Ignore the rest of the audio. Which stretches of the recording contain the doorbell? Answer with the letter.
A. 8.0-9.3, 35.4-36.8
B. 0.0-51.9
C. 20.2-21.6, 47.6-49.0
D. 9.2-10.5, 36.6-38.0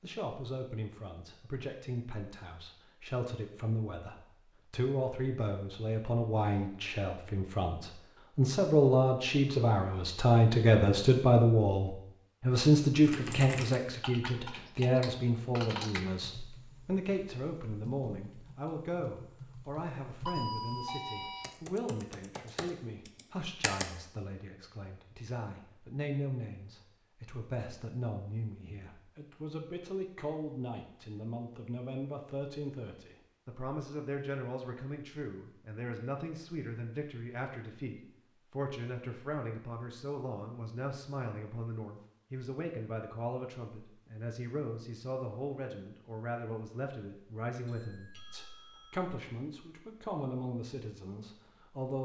C.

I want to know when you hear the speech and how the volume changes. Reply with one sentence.
The speech can be heard from 0.0 to 51.9 s, getting quieter.